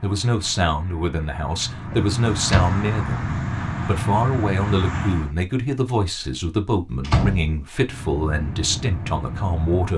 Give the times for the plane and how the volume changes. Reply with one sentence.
The plane can be heard from 0.0 to 5.3 s, getting louder; and briefly from 7.8 to 9.9 s.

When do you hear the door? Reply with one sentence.
You can hear the door from 1.9 to 2.8 s and from 7.0 to 8.0 s.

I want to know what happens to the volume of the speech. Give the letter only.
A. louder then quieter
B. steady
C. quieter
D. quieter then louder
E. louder
B.